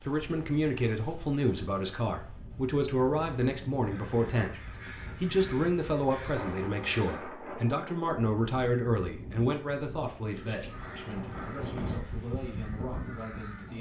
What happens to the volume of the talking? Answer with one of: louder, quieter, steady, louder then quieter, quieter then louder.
quieter.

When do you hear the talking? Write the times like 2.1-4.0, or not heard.
0.0-13.7.